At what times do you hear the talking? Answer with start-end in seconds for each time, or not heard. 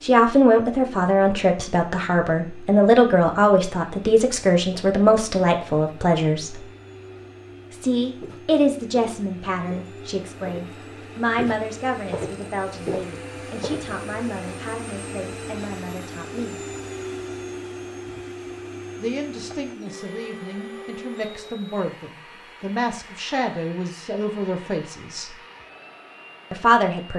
0.0-6.7, 7.7-16.6, 19.0-25.4, 26.5-27.1.